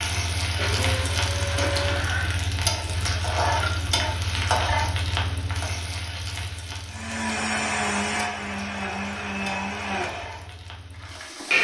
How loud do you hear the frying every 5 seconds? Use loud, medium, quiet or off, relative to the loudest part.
loud, medium, quiet.